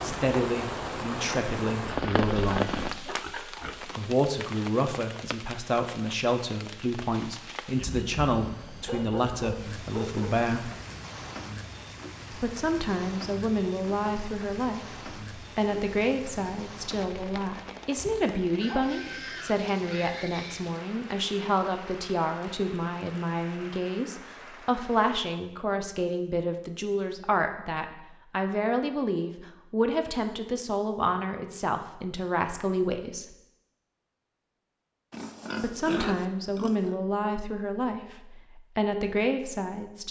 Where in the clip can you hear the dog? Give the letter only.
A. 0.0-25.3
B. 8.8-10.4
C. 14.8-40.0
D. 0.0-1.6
B.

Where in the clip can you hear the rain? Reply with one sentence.
You can hear the rain from 0.0 to 25.3 s.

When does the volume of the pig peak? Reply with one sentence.
The volume of the pig peaks at 36 seconds.